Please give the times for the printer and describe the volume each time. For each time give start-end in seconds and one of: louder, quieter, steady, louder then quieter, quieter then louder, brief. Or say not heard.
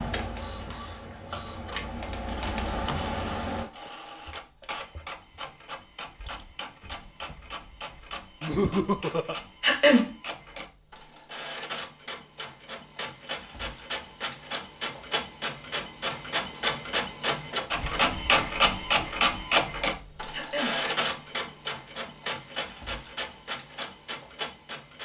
0.0-25.0 louder then quieter.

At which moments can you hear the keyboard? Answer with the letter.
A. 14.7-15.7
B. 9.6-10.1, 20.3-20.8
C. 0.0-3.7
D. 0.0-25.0
C.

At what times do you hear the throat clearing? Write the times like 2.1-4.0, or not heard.
9.6-10.1, 20.3-20.8.